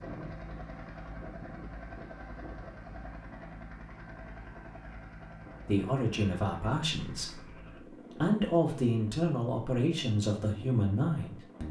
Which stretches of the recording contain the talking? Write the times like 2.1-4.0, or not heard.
5.7-11.6.